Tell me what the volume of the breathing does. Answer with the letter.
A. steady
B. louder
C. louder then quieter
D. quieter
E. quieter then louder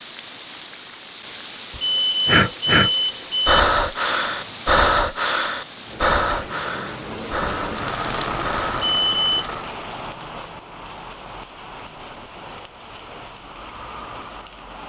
D.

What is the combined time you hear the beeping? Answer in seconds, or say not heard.
2 s.